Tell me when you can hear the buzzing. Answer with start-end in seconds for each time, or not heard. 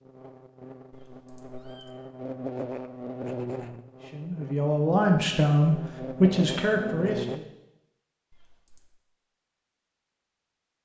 0.0-7.4.